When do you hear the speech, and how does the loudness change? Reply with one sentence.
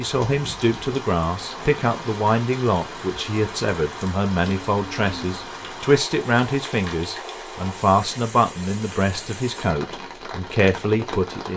The speech can be heard from 0.0 to 11.5 s, at a steady volume.